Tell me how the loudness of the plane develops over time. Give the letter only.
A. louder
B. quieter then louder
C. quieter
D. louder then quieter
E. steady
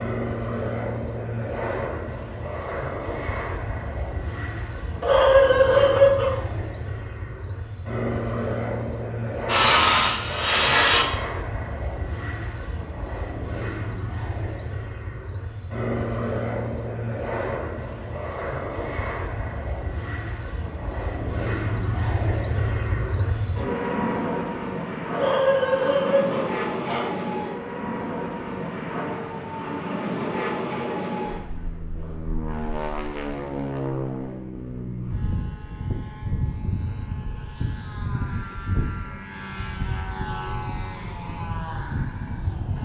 E.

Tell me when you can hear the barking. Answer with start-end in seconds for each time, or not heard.
5.0-6.3, 25.1-27.1.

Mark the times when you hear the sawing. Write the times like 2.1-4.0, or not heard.
9.4-11.1.